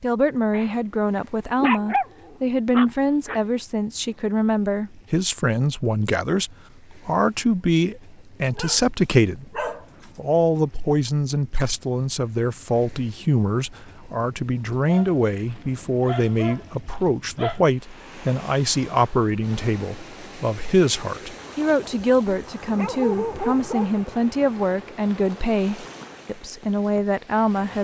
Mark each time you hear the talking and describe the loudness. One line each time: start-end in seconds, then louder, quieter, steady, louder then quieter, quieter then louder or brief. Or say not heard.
0.0-27.7 steady.